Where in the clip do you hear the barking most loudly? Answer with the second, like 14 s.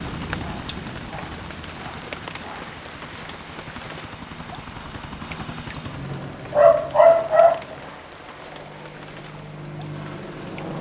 7 s.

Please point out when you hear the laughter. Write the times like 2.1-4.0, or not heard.
not heard.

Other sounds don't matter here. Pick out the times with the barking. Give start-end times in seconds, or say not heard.
0.4-2.6, 6.1-7.6.